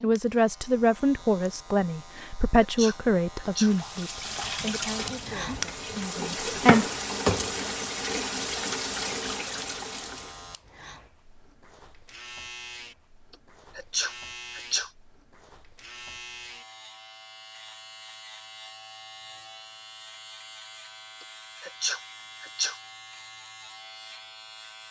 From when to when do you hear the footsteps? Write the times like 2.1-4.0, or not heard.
not heard.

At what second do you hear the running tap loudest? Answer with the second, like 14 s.
7 s.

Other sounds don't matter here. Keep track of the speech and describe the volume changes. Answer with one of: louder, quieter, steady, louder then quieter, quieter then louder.
quieter.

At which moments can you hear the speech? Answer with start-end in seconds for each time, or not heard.
0.0-6.8.